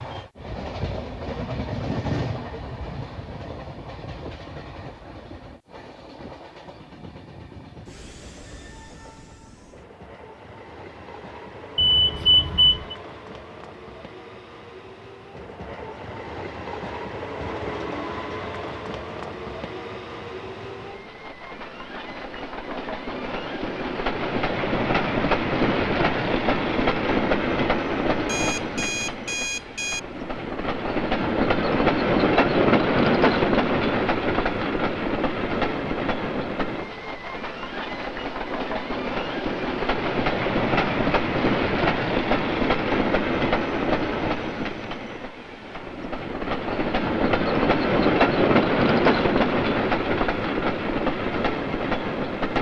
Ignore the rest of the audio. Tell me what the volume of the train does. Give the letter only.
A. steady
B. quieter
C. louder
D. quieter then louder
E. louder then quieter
C.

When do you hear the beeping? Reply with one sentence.
You can hear the beeping from 11.8 to 12.9 s and from 28.2 to 30.0 s.